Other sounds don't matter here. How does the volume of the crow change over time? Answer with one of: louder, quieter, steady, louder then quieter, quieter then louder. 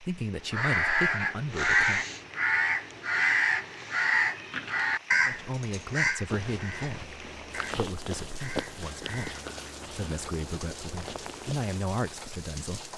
quieter.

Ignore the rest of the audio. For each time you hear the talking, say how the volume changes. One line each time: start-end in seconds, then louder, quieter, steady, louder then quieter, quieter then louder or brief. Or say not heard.
0.0-2.0 brief
5.2-12.9 quieter then louder.